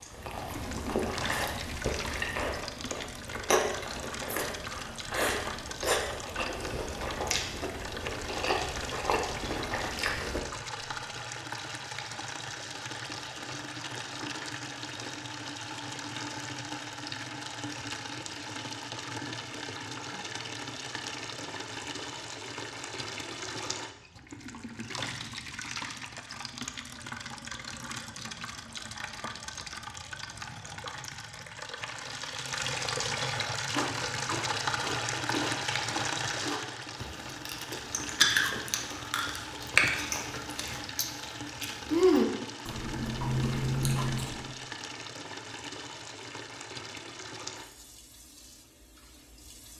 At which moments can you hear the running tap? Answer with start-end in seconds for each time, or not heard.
0.1-49.7.